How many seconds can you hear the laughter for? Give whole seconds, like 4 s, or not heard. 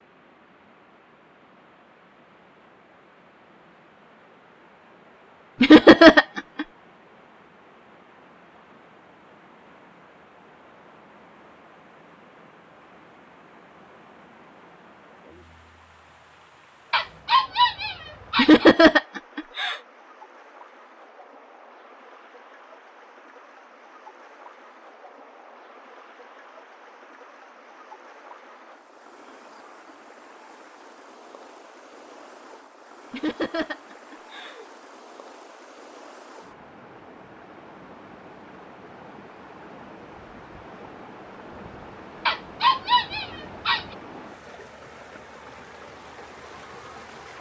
4 s.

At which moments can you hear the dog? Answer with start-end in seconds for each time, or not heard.
16.9-18.7, 42.2-43.9.